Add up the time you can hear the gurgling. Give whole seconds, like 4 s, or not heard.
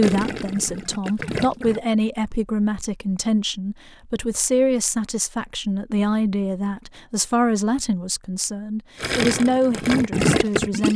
4 s.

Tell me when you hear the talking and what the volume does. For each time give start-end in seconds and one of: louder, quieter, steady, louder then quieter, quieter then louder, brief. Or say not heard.
0.0-10.9 steady.